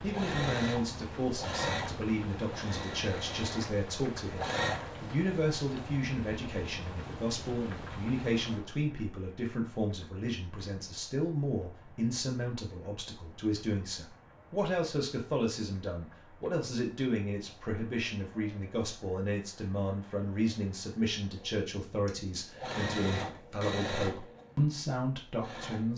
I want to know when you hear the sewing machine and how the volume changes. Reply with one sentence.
You can hear the sewing machine from 0.0 to 5.0 s, getting quieter then louder; and from 21.4 to 25.9 s, getting louder then quieter.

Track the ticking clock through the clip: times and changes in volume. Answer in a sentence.
The ticking clock can't be heard in this clip.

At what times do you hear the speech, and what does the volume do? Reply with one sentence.
You can hear the speech from 0.0 to 25.9 s, at a steady volume.